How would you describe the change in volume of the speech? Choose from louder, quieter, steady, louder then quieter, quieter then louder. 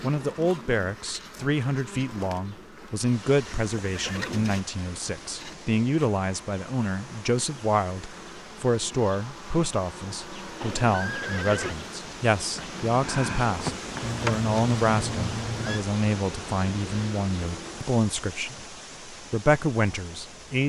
steady.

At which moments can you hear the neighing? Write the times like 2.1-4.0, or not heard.
3.5-4.6, 10.6-11.8, 14.0-15.8.